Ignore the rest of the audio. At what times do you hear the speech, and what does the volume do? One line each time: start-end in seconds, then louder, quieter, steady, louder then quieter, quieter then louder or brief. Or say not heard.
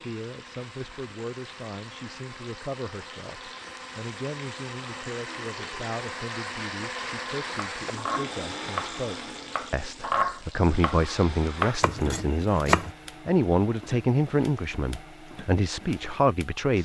0.0-16.7 louder.